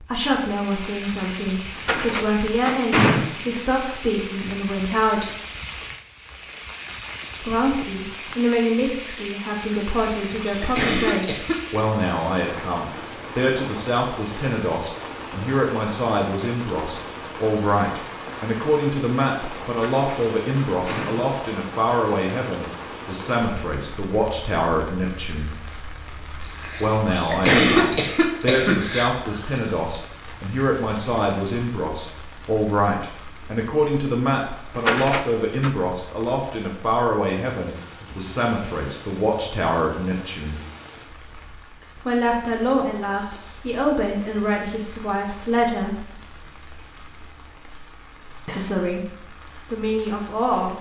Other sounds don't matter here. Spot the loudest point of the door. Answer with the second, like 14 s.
3 s.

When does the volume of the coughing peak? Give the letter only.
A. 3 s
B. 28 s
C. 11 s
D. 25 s
B.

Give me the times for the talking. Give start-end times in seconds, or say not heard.
0.0-5.3, 7.4-25.5, 26.8-40.6, 42.0-46.0, 48.5-50.7.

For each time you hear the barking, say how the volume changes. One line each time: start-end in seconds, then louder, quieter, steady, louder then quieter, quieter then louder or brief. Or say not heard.
not heard.